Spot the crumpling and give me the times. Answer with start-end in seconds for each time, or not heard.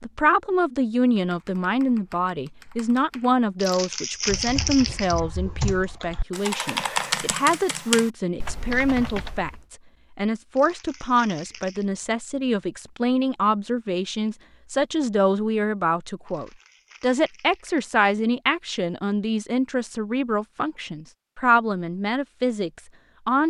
3.6-5.2, 10.6-11.8, 16.2-17.9.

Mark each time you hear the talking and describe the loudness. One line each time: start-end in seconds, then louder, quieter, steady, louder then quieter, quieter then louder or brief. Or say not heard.
0.0-23.4 steady.